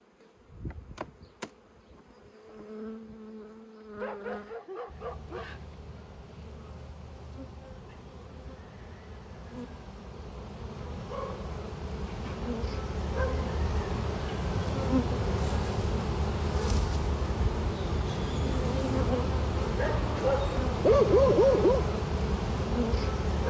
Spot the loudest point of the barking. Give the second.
21 s.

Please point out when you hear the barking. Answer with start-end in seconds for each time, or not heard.
4.0-5.6, 11.1-12.5, 19.8-21.9.